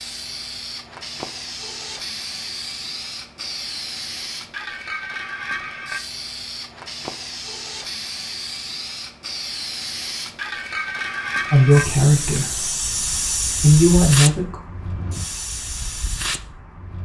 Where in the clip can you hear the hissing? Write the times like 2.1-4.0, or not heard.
0.0-17.0.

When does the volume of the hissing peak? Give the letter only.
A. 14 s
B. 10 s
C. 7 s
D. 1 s
A.